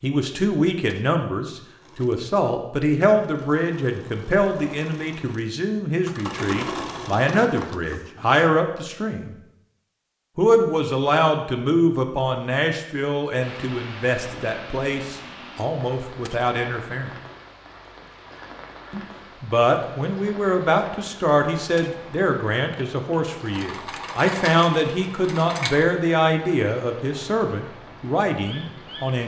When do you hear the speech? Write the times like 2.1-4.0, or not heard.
0.0-9.3, 10.3-17.1, 18.9-29.2.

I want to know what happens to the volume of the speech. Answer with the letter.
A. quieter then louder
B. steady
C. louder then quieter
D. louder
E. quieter
B.